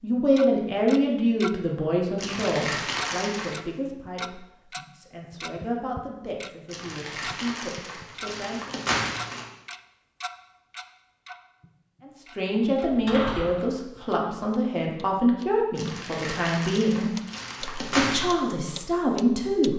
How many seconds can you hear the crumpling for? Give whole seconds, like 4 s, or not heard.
7 s.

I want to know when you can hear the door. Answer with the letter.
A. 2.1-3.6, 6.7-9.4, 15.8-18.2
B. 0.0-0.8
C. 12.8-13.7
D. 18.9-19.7
C.